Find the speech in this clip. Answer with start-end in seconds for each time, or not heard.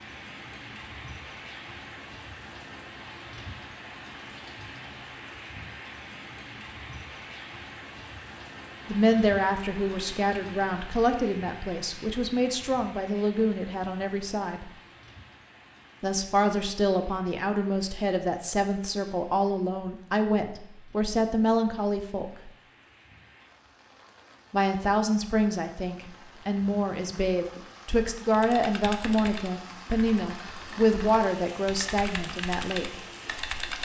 8.8-14.7, 16.0-22.5, 24.5-33.0.